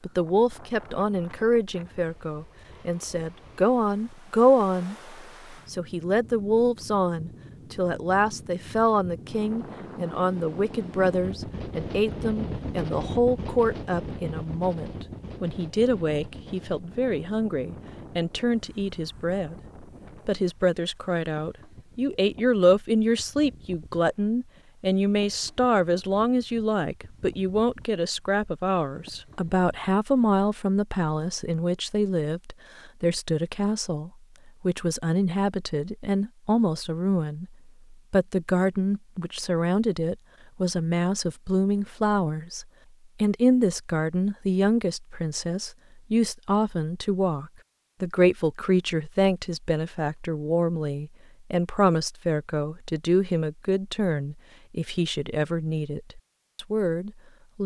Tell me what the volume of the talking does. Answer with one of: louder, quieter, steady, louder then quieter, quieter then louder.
steady.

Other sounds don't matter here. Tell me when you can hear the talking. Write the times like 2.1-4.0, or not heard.
0.0-19.6, 20.2-57.6.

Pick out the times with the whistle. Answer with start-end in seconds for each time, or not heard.
not heard.